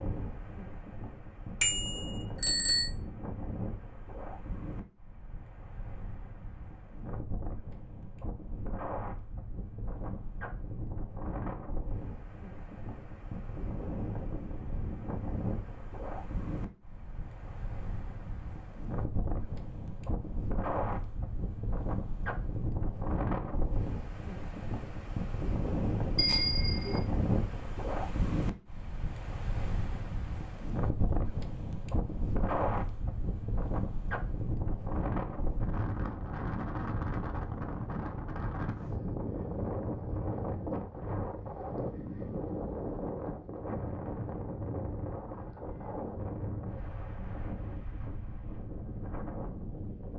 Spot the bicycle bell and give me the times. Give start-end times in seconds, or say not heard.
1.6-2.9, 26.1-27.0.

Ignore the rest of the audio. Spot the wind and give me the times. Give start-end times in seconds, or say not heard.
0.0-50.1.